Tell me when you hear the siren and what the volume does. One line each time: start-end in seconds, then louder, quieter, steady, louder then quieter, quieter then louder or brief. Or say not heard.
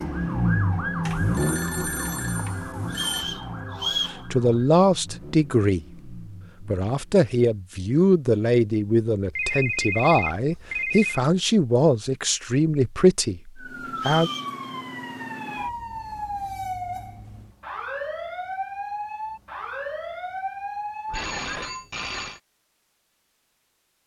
0.0-4.8 quieter
13.6-21.7 steady.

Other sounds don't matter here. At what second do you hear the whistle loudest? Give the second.
4 s.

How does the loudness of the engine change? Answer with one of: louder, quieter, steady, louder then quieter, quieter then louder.
quieter.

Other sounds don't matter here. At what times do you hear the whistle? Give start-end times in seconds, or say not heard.
2.9-4.2, 13.9-14.6.